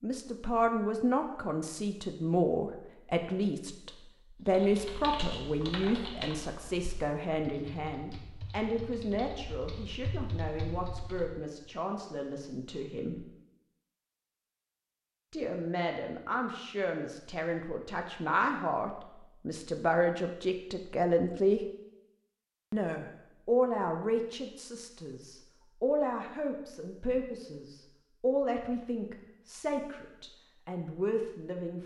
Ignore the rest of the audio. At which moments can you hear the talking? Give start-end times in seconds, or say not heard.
0.0-13.2, 15.3-21.6, 22.7-31.8.